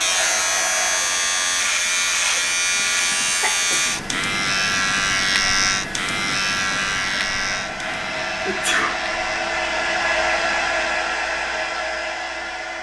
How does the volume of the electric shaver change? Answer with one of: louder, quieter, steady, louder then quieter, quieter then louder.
quieter.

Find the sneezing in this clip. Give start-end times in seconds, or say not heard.
2.4-3.9, 8.4-9.0.